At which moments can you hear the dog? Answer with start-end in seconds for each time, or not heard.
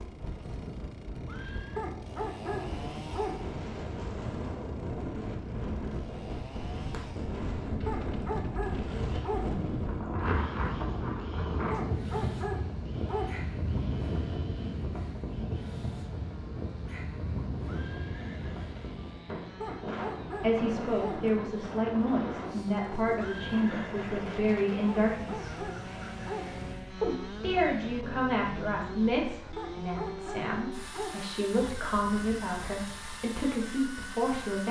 1.8-3.4, 7.8-9.4, 11.7-13.3, 19.6-21.2, 24.9-26.4, 29.6-31.1.